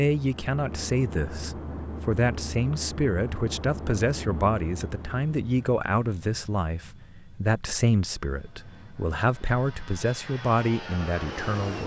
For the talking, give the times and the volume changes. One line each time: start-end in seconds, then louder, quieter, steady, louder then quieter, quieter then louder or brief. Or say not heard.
0.0-11.8 steady.